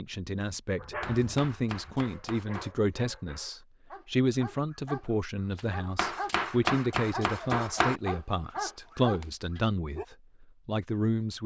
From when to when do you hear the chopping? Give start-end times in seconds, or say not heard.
1.0-2.7, 6.0-8.0.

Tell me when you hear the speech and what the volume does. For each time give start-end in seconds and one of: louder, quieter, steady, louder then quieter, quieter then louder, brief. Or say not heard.
0.0-11.4 steady.